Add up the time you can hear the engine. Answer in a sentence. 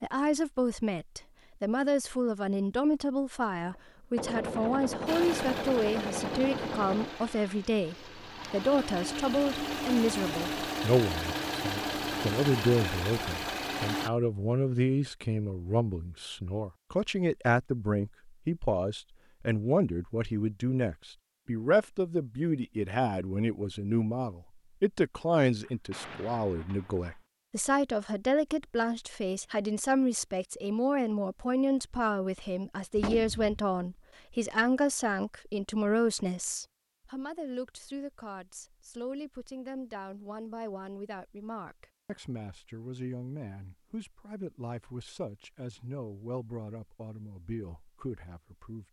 The engine can be heard for 9 seconds in total.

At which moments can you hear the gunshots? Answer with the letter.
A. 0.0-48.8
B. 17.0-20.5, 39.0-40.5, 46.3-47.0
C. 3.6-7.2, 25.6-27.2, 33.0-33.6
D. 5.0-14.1
C.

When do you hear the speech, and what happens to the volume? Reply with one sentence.
You can hear the speech from 0.0 to 48.8 s, getting quieter.